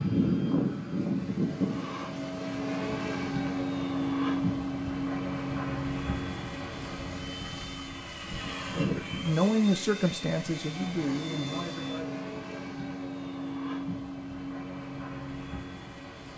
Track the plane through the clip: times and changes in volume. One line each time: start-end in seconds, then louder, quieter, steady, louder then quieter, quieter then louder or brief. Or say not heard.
0.0-16.3 quieter.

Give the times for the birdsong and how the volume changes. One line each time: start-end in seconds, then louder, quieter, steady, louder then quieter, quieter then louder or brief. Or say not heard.
not heard.